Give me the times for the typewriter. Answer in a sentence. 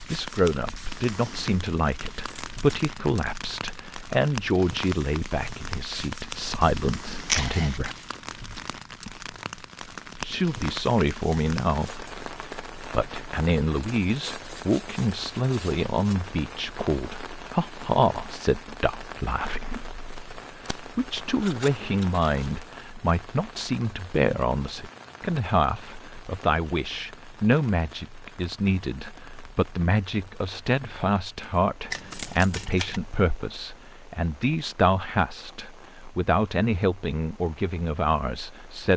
The typewriter can't be heard in this clip.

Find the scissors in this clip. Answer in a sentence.
The scissors can be heard from 7.2 to 8.0 s, from 20.6 to 22.6 s and from 31.9 to 33.0 s.